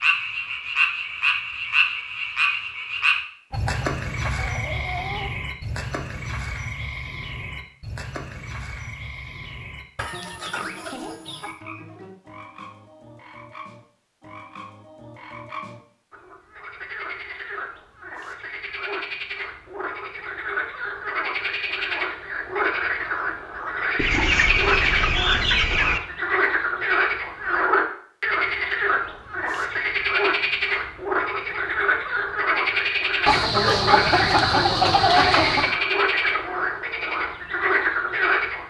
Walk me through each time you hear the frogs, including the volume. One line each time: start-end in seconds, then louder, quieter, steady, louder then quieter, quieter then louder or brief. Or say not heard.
0.0-38.6 quieter then louder.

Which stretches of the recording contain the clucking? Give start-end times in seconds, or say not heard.
3.5-5.3, 9.9-11.6, 23.9-26.0, 33.2-35.8.